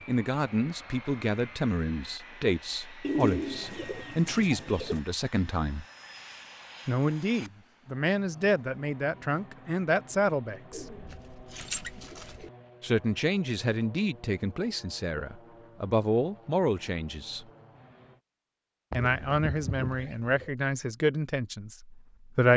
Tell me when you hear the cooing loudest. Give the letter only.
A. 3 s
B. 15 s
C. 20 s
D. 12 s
A.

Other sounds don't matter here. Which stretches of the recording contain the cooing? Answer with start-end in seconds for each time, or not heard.
3.0-5.0, 10.7-12.5, 18.9-20.5.